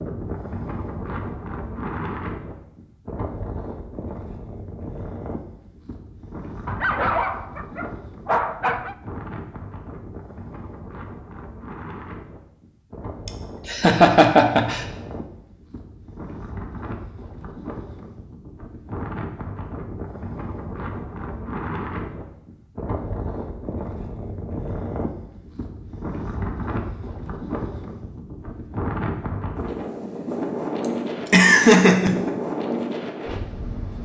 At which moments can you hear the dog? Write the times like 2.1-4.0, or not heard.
6.7-8.9.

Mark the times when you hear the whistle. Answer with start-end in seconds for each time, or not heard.
not heard.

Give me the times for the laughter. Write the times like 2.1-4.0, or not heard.
13.2-14.8, 30.8-32.3.